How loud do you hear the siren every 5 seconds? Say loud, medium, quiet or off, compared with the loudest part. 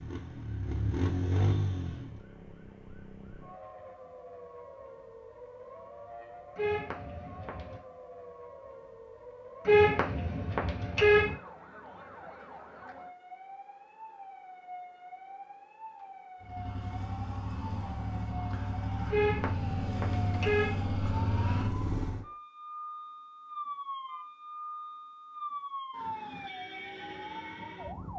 medium, medium, medium, medium, loud, loud.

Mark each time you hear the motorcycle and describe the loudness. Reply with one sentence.
The motorcycle can be heard briefly from 0.0 to 2.2 s; and from 16.4 to 22.2 s, getting louder.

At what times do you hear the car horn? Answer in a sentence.
You can hear the car horn from 6.5 to 7.8 s, from 9.7 to 11.3 s and from 19.1 to 20.8 s.